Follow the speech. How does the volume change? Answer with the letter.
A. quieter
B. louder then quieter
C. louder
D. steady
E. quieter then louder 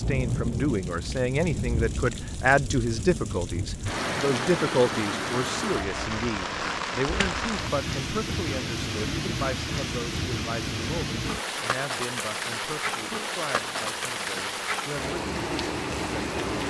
A.